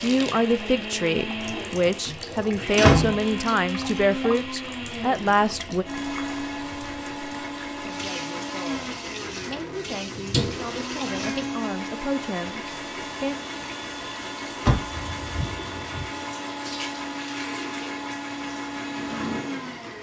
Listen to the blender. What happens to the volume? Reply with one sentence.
The loudness of the blender stays about the same.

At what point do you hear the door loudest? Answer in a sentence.
The loudest moment of the door is at 3 seconds.